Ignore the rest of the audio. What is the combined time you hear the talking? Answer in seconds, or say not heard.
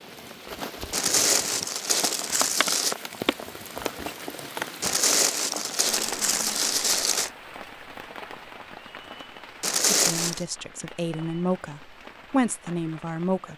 4 s.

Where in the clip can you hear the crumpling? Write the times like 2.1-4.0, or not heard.
0.9-3.0, 4.8-7.3, 9.6-10.4.